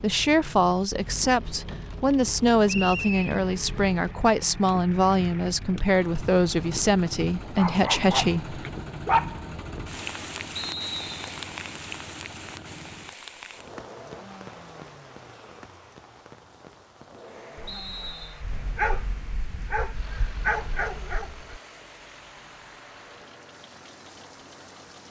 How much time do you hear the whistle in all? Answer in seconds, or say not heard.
2 s.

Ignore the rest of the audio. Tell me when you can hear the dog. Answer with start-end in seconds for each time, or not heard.
7.5-9.5, 17.6-21.6.